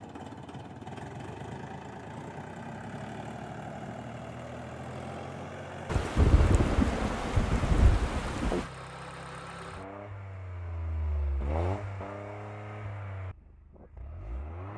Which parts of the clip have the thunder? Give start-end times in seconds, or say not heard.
5.8-8.7.